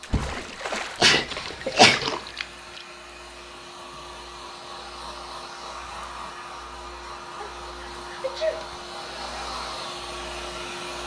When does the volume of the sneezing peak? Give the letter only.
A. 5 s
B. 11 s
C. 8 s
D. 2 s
D.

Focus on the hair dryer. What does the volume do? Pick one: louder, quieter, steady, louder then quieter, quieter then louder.
louder.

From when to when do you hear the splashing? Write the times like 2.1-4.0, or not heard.
0.0-2.9.